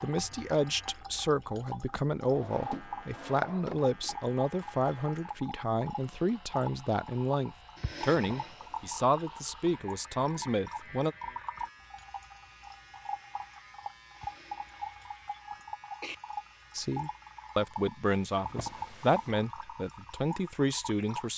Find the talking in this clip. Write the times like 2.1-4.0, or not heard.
0.0-11.2, 16.8-21.3.